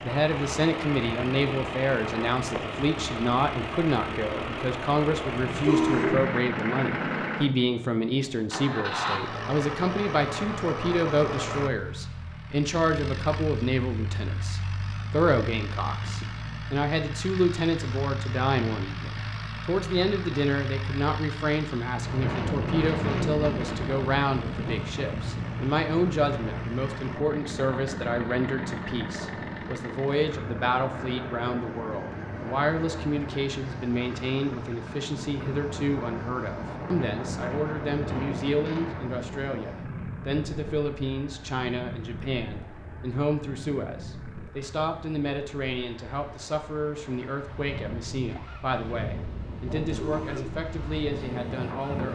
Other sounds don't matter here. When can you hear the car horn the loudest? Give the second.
6 s.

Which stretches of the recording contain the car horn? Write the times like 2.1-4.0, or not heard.
5.3-6.3, 49.9-50.6.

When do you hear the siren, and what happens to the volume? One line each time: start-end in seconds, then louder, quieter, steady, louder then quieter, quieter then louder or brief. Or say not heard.
not heard.